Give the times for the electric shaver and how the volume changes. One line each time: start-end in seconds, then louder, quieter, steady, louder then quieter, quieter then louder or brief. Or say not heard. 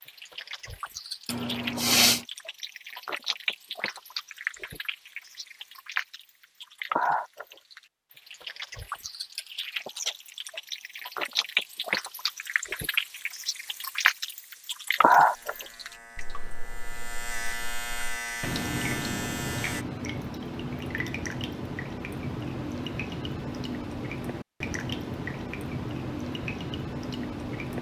15.3-19.9 louder.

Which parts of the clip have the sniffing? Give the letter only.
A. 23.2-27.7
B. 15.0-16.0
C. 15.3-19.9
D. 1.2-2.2
D.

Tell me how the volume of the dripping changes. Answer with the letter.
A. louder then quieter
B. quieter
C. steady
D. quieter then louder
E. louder
A.